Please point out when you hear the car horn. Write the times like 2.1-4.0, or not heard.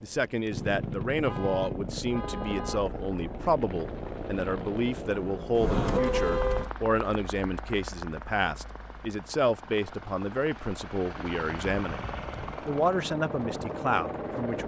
1.2-2.8, 5.5-6.7, 11.6-12.6.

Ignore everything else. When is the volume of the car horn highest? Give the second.
6 s.